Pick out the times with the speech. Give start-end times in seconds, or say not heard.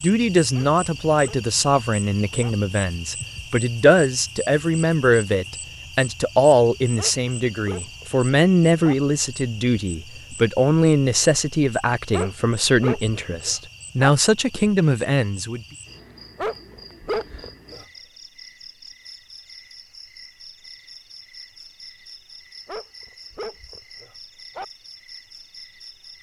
0.0-15.7.